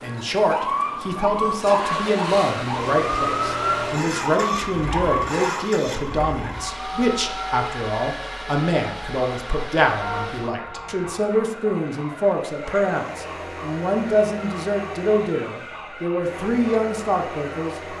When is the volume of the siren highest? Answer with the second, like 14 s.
3 s.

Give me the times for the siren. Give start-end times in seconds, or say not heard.
0.0-17.9.